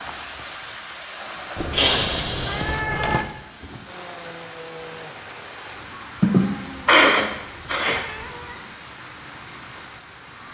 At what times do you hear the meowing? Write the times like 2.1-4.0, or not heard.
1.6-3.2, 6.2-8.7.